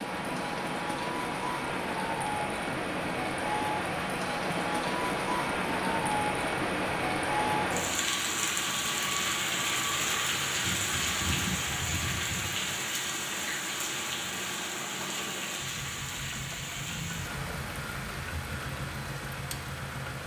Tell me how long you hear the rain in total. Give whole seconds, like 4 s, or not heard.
20 s.